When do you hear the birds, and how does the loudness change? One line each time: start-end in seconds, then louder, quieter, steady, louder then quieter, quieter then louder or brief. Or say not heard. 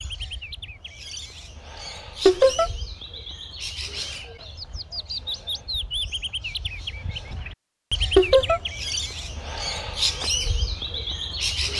0.0-11.7 louder.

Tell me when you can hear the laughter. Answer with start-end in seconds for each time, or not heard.
2.2-2.7, 8.2-8.6.